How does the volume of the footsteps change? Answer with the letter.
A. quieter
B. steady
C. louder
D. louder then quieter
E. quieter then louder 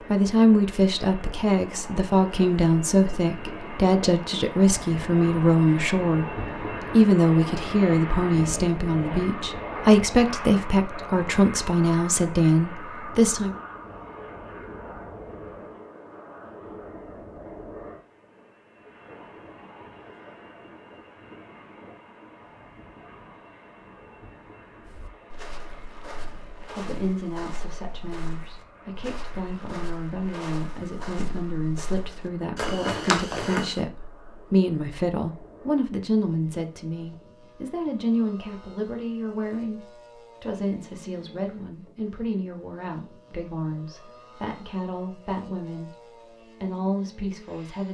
C.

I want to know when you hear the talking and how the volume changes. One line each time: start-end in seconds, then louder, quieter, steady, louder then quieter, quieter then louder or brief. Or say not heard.
0.1-13.6 steady
26.6-46.0 louder then quieter
46.6-47.8 brief.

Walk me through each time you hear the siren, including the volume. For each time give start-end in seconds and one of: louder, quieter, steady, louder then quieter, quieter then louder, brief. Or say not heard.
not heard.